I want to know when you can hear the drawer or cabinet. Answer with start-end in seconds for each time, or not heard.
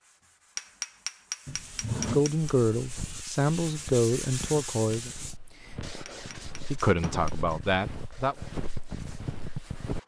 1.4-2.2, 6.0-7.3.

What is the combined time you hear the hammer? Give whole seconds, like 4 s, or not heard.
3 s.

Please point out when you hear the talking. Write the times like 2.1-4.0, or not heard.
2.1-5.1, 6.7-8.3.